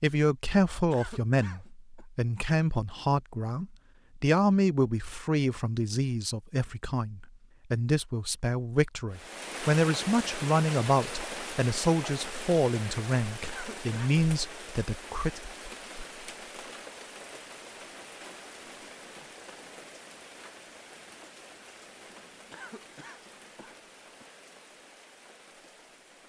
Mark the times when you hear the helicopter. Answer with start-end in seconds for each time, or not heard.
not heard.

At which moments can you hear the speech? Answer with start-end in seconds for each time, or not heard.
0.0-15.4.